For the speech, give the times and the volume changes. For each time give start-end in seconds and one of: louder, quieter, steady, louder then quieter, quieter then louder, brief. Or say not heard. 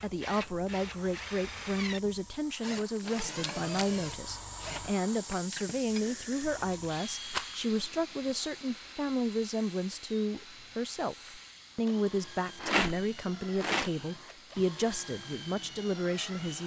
0.0-16.6 steady.